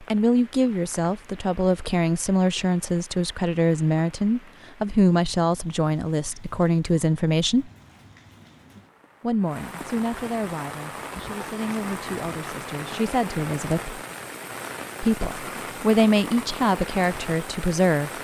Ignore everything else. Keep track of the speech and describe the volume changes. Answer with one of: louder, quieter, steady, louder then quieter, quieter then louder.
quieter then louder.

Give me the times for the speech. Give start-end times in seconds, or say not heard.
0.0-7.7, 9.2-14.0, 15.0-18.1.